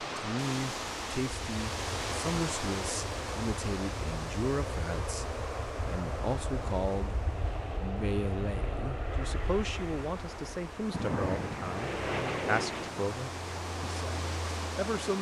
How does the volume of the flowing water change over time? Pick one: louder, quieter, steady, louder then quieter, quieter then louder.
quieter then louder.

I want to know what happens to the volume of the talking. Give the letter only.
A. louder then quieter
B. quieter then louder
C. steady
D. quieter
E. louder
C.